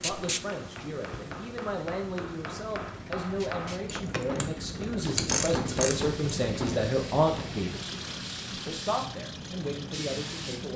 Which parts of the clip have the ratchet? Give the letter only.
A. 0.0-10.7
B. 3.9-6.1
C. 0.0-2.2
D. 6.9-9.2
B.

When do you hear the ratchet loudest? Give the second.
5 s.